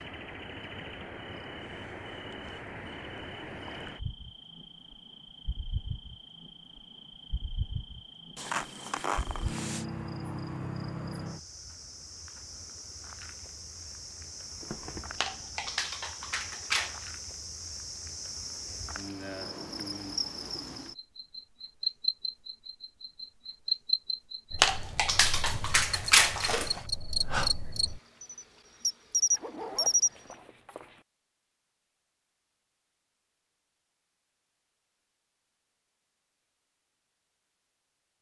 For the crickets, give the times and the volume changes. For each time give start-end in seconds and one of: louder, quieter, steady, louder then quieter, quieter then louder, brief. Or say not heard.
0.0-30.1 louder.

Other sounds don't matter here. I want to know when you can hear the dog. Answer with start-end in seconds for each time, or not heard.
15.2-17.1, 24.6-26.8.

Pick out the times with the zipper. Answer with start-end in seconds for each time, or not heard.
8.3-9.8, 14.6-15.8, 29.3-31.1.